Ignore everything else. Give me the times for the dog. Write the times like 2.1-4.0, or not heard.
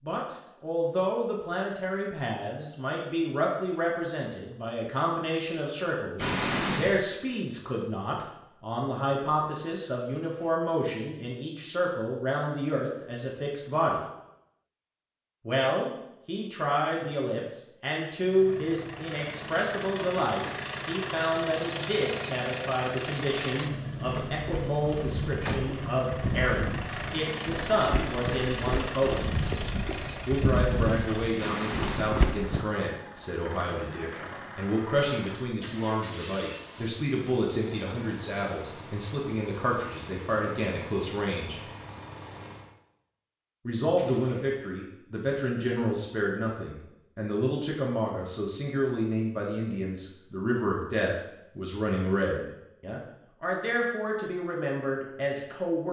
not heard.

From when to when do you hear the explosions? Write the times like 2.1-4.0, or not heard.
6.2-7.0, 31.4-32.1, 44.0-44.8.